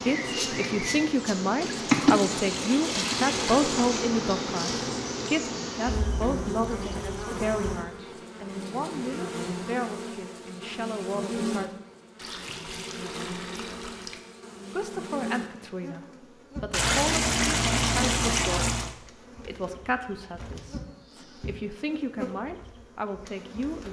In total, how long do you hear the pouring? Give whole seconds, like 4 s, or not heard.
7 s.